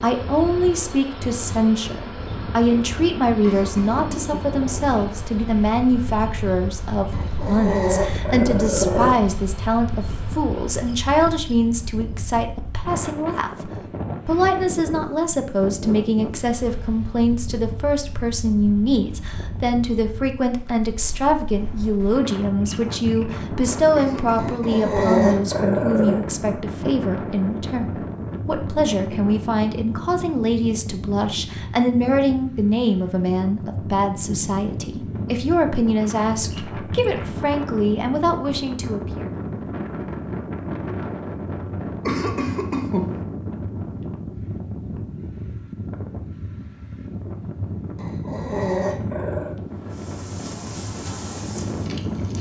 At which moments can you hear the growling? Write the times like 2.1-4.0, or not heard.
7.1-9.2, 24.4-26.2, 48.0-49.6.